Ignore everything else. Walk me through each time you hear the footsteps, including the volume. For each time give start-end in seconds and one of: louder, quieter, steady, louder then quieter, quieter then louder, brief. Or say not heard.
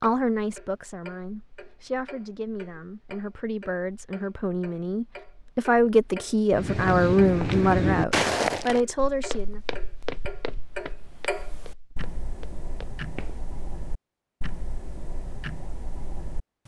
6.5-13.4 quieter.